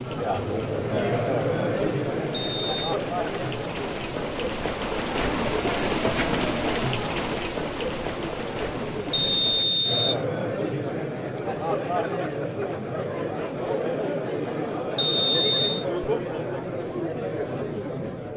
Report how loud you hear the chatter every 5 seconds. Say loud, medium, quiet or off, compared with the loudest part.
loud, medium, loud, loud.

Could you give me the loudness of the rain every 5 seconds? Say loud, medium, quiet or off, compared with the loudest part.
medium, loud, off, off.